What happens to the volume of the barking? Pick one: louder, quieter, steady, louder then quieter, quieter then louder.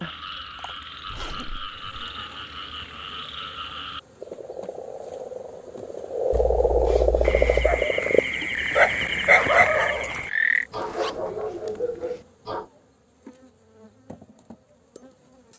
louder then quieter.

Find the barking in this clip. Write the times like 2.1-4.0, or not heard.
7.2-12.7.